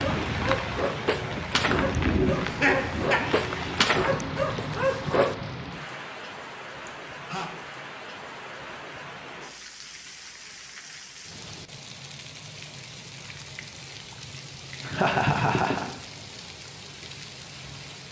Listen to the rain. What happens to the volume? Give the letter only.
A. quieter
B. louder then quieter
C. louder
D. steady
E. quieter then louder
A.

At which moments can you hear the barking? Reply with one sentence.
You can hear the barking from 0.0 to 5.3 s.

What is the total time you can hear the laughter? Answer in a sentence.
You can hear the laughter for 3 seconds altogether.